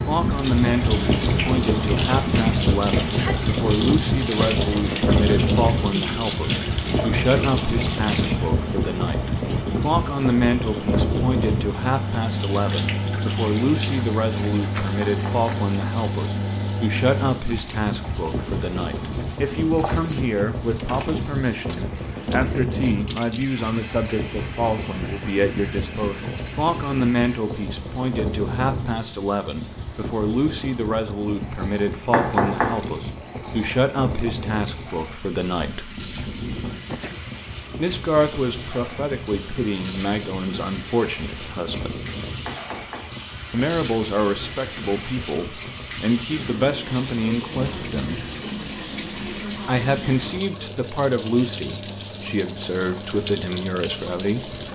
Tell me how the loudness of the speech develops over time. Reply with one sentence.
The loudness of the speech stays about the same.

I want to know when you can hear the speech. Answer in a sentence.
You can hear the speech from 0.1 to 35.9 s, from 37.8 to 42.0 s, from 43.5 to 48.3 s and from 49.6 to 54.5 s.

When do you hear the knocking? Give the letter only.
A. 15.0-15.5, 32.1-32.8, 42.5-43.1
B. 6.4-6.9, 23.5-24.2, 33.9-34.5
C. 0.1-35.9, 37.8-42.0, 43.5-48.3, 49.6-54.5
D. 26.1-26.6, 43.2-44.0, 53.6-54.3
A.